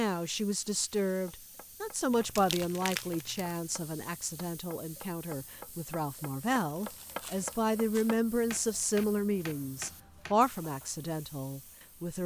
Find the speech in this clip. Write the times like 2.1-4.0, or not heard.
0.0-12.2.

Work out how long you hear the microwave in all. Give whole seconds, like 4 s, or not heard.
not heard.